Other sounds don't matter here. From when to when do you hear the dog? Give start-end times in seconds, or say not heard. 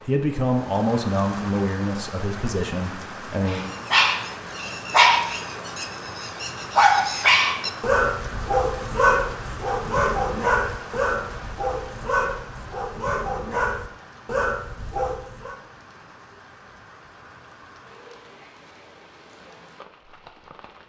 3.5-15.6.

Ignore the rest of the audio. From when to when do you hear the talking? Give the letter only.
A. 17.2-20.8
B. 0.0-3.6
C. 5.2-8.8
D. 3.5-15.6
B.